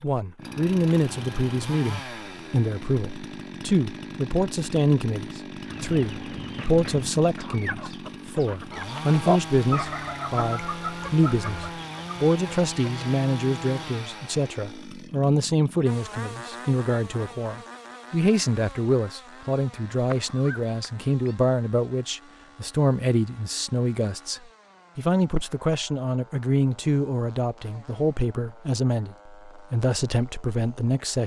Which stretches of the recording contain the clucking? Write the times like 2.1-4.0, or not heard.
5.5-13.2.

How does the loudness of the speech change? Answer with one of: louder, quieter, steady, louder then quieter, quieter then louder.
steady.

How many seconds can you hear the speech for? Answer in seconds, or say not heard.
31 s.